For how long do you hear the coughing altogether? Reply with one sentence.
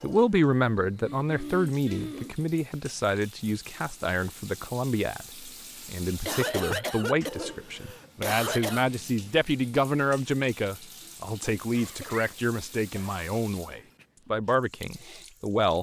You can hear the coughing for 6 seconds altogether.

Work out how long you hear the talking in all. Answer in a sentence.
The talking can be heard for 16 seconds in total.